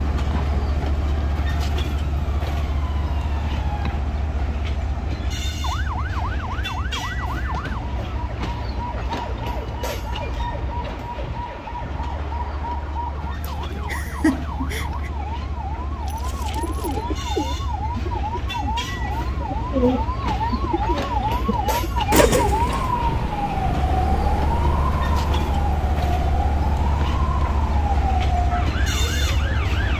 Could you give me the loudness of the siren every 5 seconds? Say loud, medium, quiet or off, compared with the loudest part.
medium, medium, medium, medium, loud, loud.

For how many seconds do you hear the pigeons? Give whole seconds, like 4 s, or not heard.
7 s.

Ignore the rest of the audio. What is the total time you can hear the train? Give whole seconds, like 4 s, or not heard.
30 s.